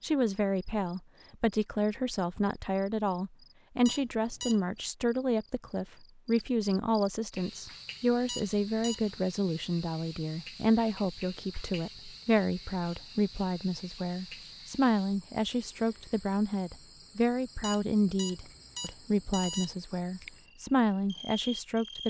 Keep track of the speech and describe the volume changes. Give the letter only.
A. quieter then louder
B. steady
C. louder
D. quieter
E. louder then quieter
B.